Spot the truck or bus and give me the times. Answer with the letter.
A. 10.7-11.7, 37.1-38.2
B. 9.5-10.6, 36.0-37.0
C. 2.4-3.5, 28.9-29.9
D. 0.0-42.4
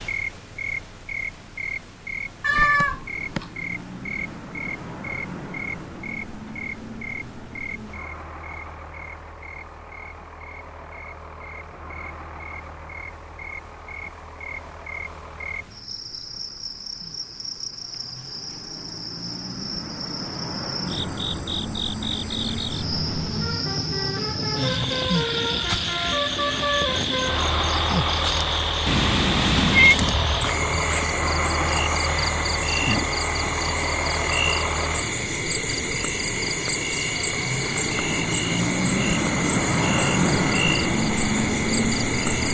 D.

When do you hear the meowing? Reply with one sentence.
You can hear the meowing from 2.4 to 3.5 s and from 28.9 to 29.9 s.